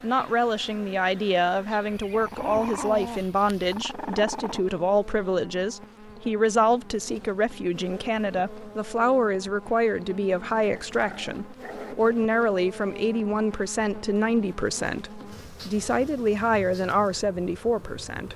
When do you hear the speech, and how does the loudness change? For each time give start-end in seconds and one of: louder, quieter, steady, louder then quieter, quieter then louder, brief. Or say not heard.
0.0-18.3 steady.